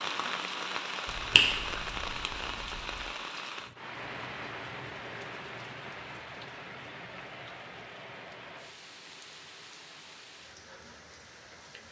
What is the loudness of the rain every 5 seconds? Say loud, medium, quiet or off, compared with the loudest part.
loud, medium, quiet.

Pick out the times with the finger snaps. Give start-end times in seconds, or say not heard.
1.1-3.0.